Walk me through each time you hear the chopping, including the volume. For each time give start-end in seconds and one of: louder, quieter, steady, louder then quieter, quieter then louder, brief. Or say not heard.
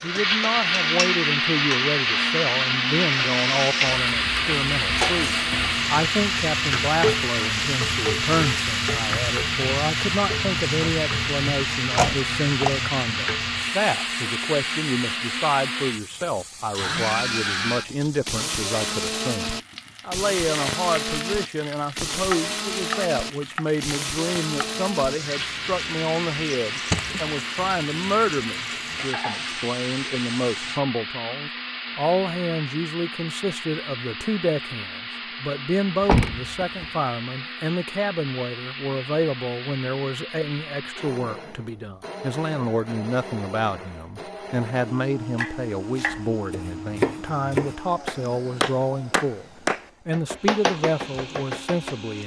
45.4-52.0 louder.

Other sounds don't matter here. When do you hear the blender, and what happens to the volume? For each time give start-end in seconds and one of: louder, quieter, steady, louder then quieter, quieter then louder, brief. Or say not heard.
0.0-52.2 quieter.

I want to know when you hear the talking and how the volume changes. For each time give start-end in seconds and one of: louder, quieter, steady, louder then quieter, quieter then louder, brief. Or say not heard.
0.0-49.5 steady
50.0-52.2 brief.